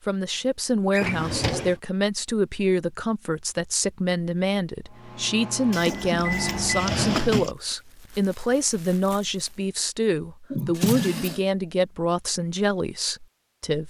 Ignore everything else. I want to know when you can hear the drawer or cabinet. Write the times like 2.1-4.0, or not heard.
0.9-1.8, 5.7-7.5, 10.5-11.4.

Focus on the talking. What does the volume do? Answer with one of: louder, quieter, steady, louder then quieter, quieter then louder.
steady.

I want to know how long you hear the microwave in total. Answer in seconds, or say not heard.
2 s.